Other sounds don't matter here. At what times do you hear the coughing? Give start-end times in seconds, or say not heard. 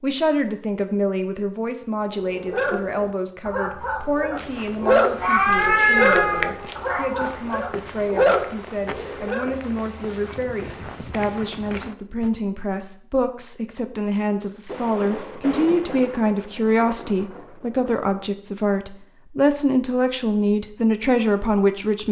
not heard.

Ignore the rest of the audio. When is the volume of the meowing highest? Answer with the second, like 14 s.
6 s.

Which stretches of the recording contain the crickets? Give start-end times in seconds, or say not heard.
not heard.